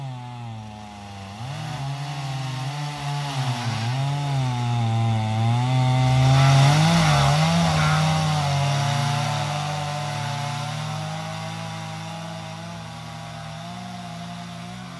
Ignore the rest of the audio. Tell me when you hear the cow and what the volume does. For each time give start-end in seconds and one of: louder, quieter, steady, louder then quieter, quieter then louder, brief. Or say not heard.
not heard.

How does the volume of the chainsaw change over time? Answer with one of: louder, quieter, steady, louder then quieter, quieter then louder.
louder then quieter.